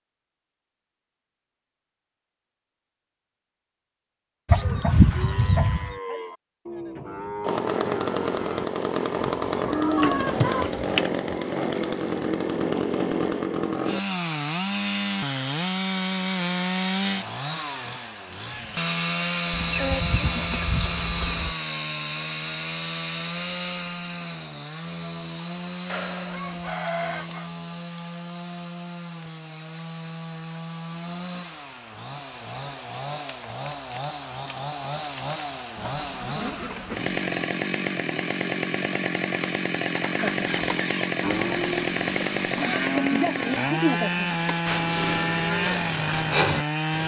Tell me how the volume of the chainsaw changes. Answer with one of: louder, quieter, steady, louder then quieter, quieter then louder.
quieter then louder.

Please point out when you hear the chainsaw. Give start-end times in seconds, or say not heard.
7.4-47.0.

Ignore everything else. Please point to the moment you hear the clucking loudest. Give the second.
5 s.